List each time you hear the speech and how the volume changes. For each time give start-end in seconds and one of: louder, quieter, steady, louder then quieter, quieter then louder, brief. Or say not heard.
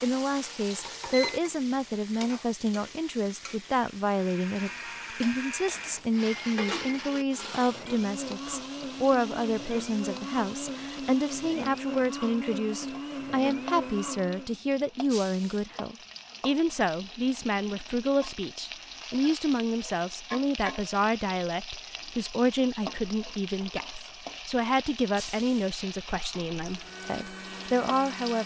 0.0-28.4 steady.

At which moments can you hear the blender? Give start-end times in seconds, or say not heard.
4.1-14.6, 26.6-28.4.